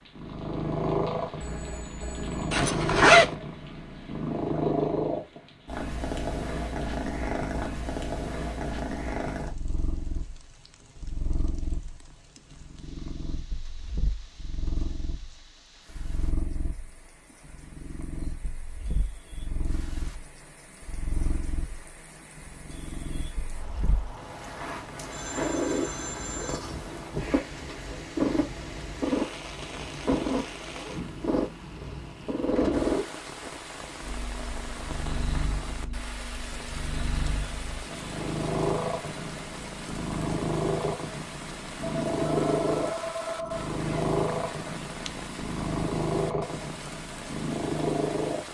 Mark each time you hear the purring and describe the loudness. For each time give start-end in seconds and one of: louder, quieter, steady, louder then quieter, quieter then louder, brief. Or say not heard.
0.1-48.4 quieter then louder.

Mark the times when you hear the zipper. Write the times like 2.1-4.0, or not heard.
2.5-3.4, 43.5-44.0, 44.6-45.1.